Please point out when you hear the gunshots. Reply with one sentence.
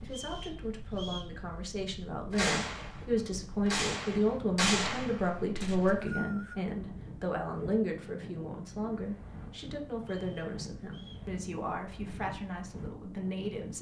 You can hear the gunshots from 2.3 to 6.0 s.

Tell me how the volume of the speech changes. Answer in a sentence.
The volume of the speech goes up, then down.